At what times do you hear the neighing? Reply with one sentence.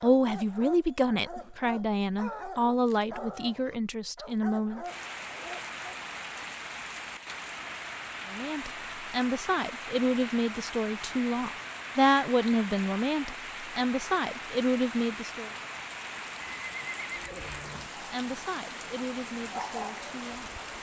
You can hear the neighing from 16.4 to 17.9 s.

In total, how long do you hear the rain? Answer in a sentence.
The rain can be heard for 16 seconds in total.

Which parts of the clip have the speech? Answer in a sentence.
The speech can be heard from 0.0 to 4.8 s, from 8.2 to 15.5 s and from 18.1 to 20.5 s.